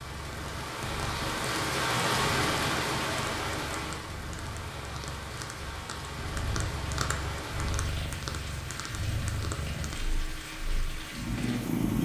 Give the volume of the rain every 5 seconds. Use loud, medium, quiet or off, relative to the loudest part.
loud, medium, medium.